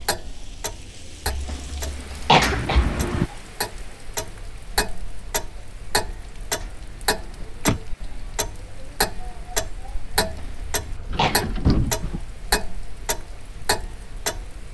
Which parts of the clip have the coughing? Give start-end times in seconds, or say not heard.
1.2-3.0, 10.2-11.5.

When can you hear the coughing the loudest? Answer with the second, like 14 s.
2 s.